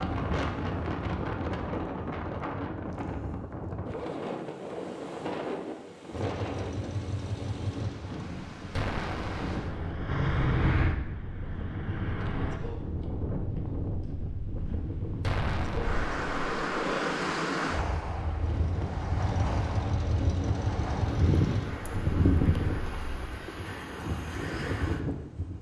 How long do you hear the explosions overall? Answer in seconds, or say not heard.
2 s.